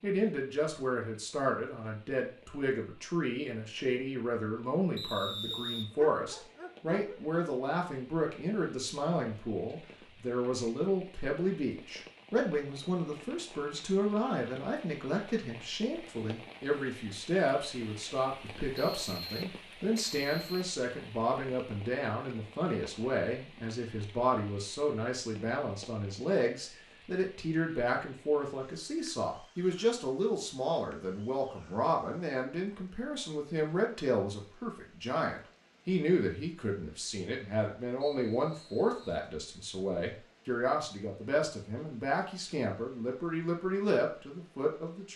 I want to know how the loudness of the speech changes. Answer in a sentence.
The loudness of the speech stays about the same.